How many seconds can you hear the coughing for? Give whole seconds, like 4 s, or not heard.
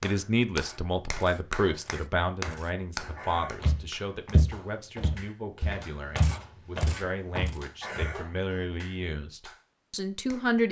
2 s.